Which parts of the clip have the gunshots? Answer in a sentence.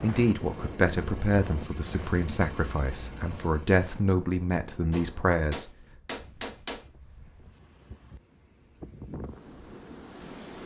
You can hear the gunshots from 4.9 to 6.8 s.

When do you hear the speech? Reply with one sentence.
The speech can be heard from 0.0 to 5.7 s.